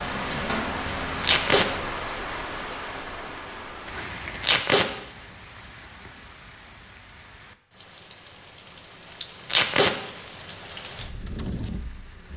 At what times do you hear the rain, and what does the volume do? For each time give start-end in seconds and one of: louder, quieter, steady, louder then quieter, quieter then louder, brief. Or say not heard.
0.0-12.3 quieter then louder.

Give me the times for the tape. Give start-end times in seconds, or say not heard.
1.2-1.6, 4.4-4.8, 9.5-9.9.